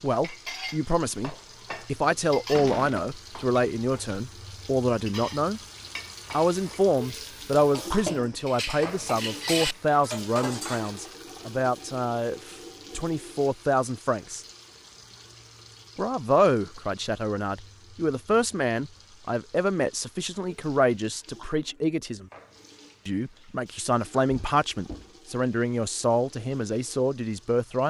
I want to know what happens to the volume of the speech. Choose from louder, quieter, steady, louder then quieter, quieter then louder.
steady.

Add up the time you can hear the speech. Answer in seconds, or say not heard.
25 s.